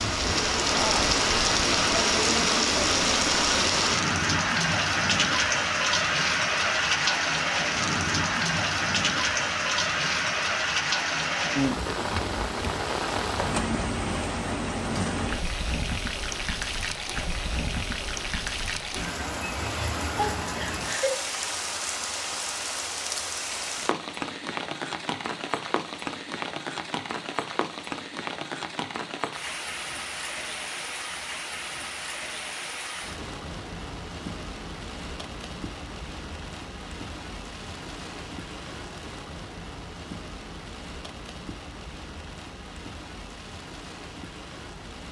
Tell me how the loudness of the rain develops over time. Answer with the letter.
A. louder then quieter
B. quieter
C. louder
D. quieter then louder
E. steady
B.